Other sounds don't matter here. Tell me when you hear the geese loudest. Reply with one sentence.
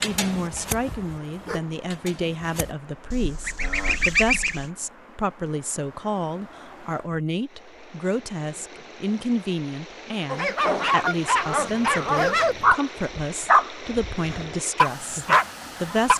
The loudest moment of the geese is at 4 seconds.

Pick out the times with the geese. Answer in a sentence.
The geese can be heard from 3.1 to 4.7 s and from 11.0 to 12.8 s.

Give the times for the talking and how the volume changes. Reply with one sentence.
The talking can be heard from 0.0 to 16.1 s, at a steady volume.